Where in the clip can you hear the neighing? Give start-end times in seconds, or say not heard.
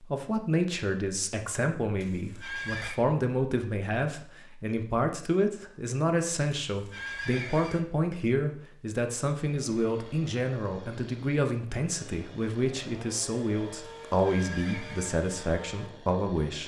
2.0-3.0, 6.7-7.8, 14.1-15.2.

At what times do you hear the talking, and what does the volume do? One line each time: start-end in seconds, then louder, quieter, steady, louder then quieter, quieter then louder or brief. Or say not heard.
0.0-16.6 steady.